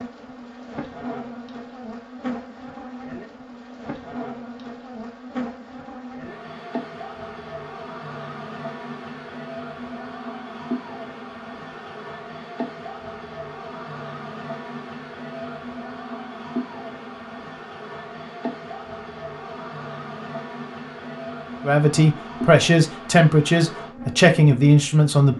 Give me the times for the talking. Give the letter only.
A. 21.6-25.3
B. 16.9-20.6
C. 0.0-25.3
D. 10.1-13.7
A.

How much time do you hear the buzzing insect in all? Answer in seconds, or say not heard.
25 s.